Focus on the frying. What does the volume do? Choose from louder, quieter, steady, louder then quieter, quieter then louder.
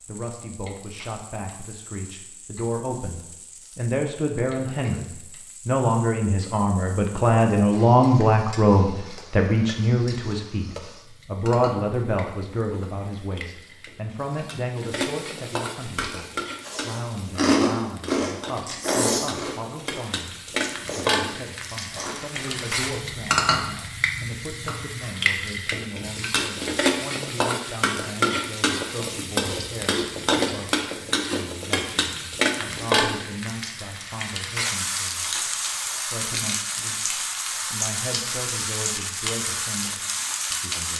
louder.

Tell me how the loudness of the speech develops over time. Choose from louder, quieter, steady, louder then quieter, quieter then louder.
quieter.